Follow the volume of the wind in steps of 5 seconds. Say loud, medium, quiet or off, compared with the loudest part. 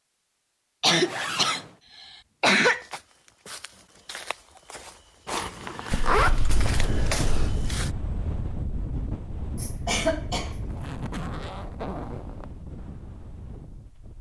off, loud, medium.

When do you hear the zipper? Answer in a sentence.
You can hear the zipper from 1.0 to 1.8 s, from 5.2 to 6.9 s and from 10.7 to 12.6 s.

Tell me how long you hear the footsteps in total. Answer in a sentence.
The footsteps can be heard for 5 seconds in total.